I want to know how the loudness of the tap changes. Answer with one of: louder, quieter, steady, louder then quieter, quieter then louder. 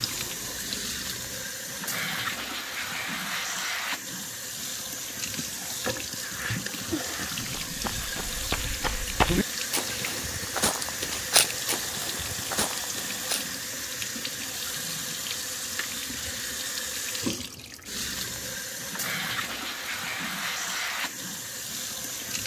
steady.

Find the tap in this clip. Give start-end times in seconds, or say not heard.
0.0-22.4.